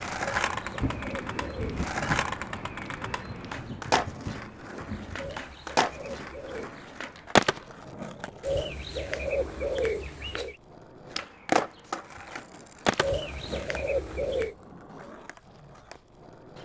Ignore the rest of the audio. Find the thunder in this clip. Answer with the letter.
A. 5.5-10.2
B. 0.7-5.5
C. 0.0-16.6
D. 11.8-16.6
B.